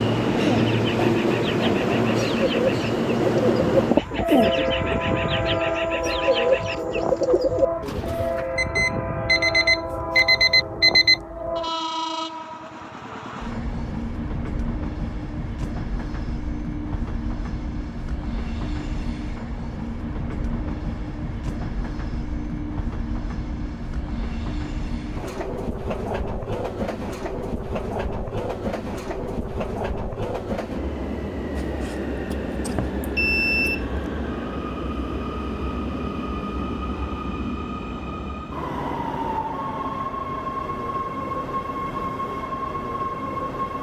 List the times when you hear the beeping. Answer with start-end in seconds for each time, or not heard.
8.6-11.2, 31.6-33.9.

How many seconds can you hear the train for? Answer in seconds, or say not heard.
44 s.